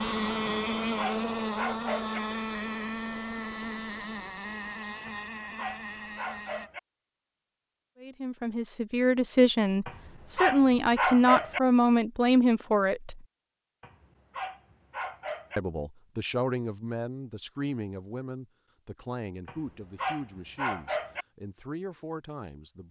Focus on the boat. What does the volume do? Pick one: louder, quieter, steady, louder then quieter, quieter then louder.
quieter.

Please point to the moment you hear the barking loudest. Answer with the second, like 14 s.
11 s.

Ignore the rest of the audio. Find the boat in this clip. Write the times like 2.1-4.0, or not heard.
0.0-6.7.